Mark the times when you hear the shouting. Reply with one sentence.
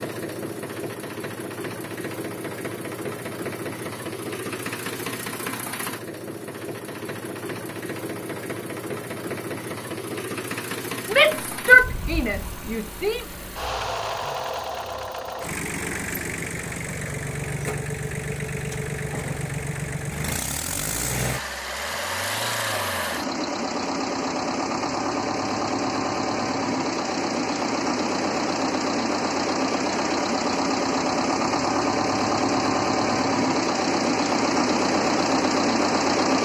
The shouting can be heard from 11.1 to 13.2 s.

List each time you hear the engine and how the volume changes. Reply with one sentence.
You can hear the engine from 0.0 to 36.4 s, getting louder.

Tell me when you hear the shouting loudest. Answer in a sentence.
The loudest moment of the shouting is at 12 seconds.